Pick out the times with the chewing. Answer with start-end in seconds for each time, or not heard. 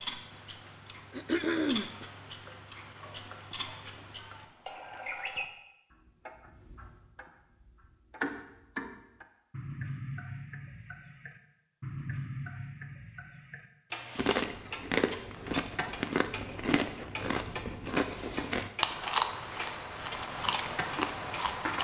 14.2-21.7.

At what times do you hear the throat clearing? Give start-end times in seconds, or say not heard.
1.1-2.0.